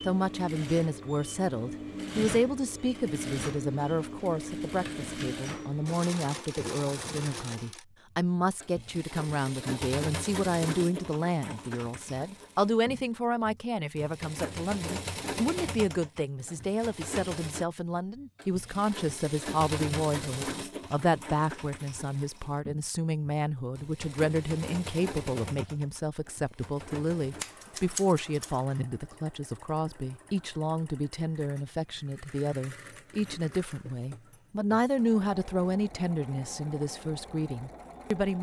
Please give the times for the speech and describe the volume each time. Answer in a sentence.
The speech can be heard from 0.1 to 38.3 s, at a steady volume.